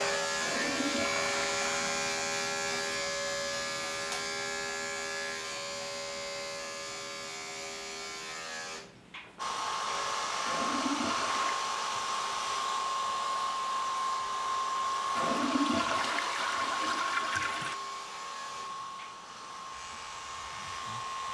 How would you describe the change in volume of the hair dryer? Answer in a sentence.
The loudness of the hair dryer goes down.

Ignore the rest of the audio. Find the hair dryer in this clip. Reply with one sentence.
The hair dryer can be heard from 9.3 to 21.3 s.